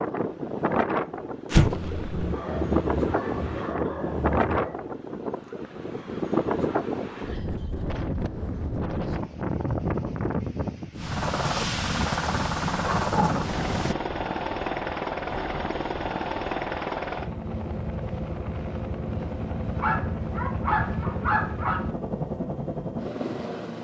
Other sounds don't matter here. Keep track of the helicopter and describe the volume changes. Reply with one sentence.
The volume of the helicopter stays about the same.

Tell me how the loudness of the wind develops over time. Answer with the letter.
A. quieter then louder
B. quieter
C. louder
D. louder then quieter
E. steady
E.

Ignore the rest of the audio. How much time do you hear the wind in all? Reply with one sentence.
The wind can be heard for 14 seconds in total.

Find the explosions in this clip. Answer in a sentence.
You can hear the explosions from 1.5 to 2.3 s.